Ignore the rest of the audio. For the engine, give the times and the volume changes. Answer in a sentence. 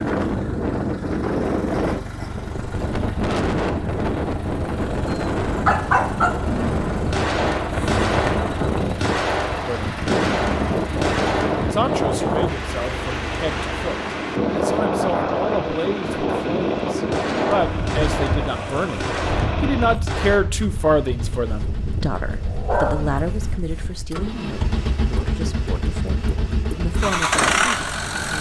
The engine can be heard from 0.0 to 28.3 s, getting louder.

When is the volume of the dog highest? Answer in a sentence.
The loudest moment of the dog is at 6 seconds.